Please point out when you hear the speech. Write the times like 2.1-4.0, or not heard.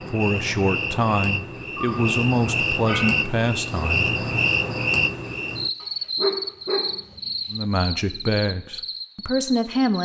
0.1-4.1, 7.5-10.0.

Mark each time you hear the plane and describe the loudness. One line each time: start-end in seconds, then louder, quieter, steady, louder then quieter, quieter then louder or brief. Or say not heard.
not heard.